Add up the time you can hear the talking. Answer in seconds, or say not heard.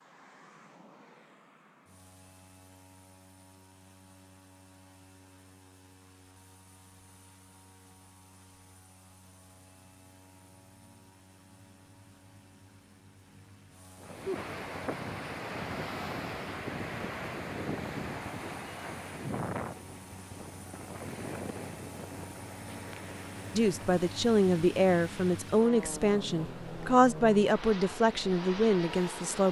6 s.